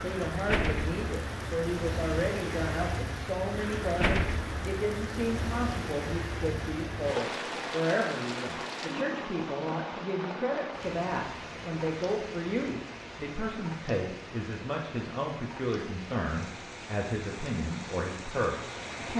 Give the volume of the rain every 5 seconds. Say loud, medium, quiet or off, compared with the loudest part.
loud, loud, medium, medium.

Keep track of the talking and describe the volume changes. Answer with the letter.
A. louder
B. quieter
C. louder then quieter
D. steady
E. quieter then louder
D.